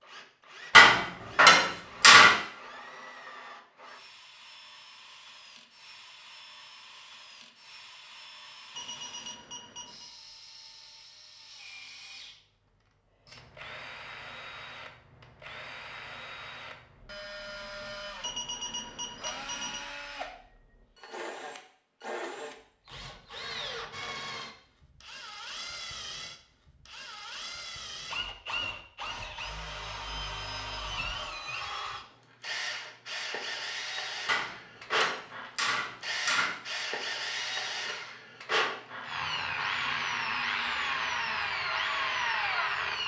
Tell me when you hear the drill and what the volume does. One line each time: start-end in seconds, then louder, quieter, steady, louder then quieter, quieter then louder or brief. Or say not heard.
0.0-43.0 louder.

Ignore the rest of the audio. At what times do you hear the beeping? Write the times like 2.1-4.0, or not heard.
8.8-10.1, 18.2-19.8, 37.4-38.0.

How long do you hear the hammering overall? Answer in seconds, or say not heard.
4 s.